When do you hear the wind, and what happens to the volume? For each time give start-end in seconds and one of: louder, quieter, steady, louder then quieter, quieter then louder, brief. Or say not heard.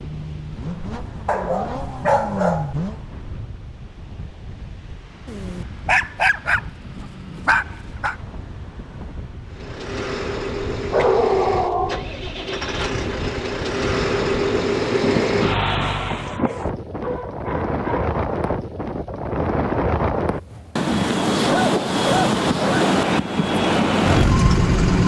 0.0-25.0 louder.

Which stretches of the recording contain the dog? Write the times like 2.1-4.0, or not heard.
1.2-2.8, 5.2-8.2, 10.9-12.1, 16.2-18.1, 21.4-22.9.